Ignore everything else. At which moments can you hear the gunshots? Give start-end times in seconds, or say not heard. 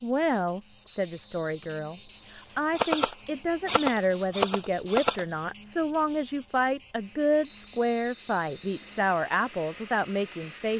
2.8-5.2.